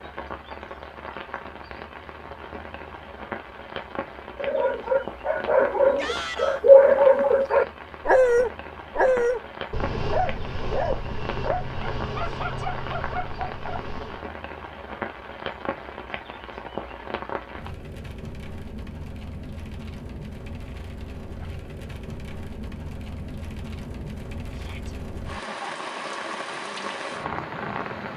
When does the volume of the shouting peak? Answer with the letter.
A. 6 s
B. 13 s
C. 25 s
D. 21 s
A.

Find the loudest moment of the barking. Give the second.
7 s.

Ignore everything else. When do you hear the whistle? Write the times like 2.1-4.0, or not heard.
not heard.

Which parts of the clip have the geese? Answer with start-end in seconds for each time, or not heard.
not heard.